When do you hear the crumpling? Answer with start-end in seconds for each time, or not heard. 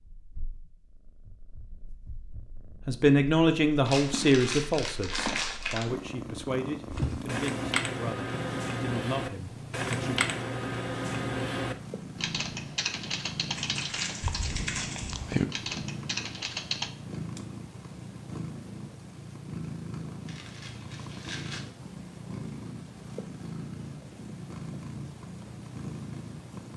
3.9-5.8, 13.6-15.4, 20.2-21.6.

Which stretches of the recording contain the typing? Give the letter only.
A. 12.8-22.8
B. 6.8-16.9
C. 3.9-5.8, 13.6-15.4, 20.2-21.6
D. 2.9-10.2
B.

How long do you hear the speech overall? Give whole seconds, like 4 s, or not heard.
7 s.